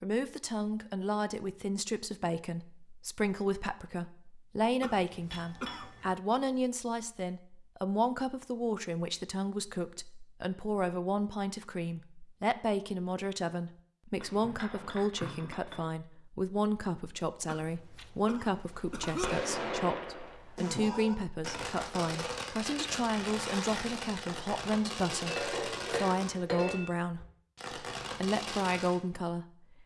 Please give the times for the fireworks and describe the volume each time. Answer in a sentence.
You can hear the fireworks from 18.5 to 29.0 s, at a steady volume.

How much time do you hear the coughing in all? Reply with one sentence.
The coughing can be heard for 3 seconds in total.